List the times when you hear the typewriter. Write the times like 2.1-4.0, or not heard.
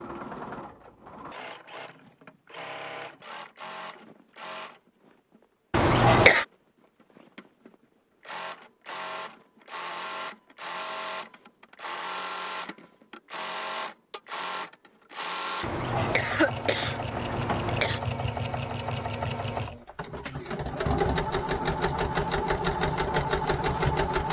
not heard.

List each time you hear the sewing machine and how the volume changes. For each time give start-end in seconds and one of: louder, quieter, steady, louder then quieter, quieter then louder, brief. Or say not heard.
0.0-24.2 louder.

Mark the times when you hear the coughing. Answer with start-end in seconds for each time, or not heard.
5.7-6.5, 15.6-18.0.